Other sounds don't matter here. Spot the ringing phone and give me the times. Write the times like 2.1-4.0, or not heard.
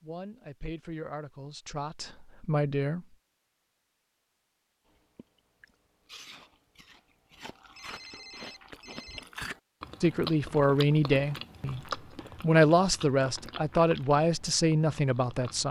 7.3-9.2.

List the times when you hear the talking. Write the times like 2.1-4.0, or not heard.
0.0-3.0, 10.0-15.6.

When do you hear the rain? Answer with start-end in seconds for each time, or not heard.
not heard.